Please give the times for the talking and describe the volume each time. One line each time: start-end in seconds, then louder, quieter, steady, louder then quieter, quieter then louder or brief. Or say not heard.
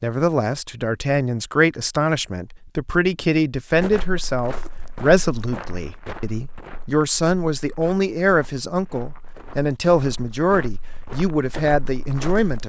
0.0-12.6 steady.